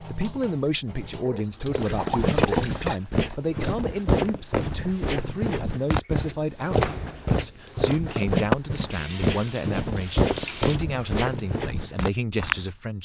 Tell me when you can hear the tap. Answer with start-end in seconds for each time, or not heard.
0.0-3.0, 8.9-10.8.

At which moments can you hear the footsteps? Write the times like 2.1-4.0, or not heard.
1.6-12.7.